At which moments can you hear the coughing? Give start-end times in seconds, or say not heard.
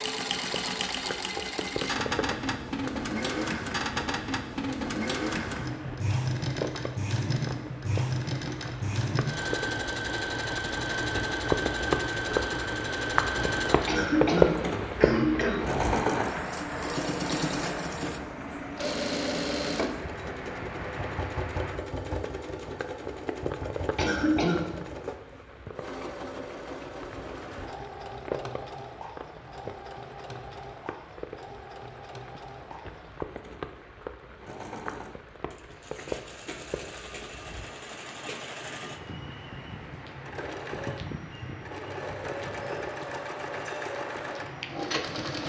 13.8-15.7, 23.9-24.6.